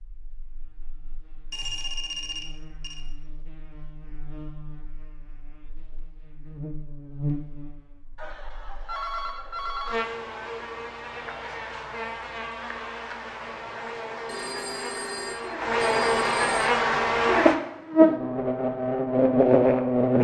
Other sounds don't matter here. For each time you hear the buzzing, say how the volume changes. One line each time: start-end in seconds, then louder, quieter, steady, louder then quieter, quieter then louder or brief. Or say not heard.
0.2-20.1 louder.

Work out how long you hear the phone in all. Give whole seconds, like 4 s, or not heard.
6 s.